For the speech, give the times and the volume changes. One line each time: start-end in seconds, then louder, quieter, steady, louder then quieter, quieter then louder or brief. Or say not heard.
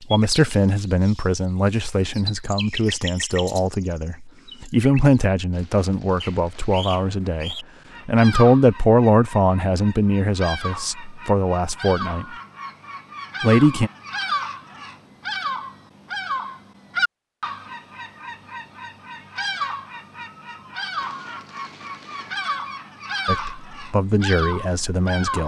0.1-12.2 louder then quieter
13.4-13.9 brief
23.2-25.4 brief.